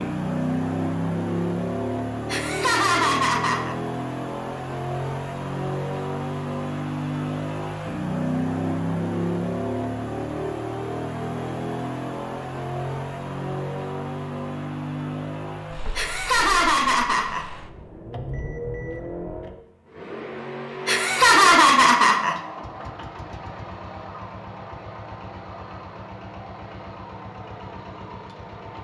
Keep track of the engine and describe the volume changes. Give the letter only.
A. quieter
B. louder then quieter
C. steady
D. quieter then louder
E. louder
A.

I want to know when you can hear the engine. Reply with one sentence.
The engine can be heard from 0.0 to 28.7 s.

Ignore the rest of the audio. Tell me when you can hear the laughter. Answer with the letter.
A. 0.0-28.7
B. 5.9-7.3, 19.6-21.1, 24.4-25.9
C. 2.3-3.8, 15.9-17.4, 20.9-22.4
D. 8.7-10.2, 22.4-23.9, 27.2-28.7
C.